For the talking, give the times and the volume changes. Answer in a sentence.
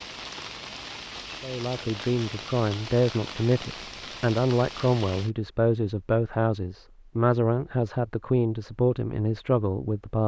You can hear the talking from 1.4 to 10.2 s, at a steady volume.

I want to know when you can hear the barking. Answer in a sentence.
You can't hear the barking here.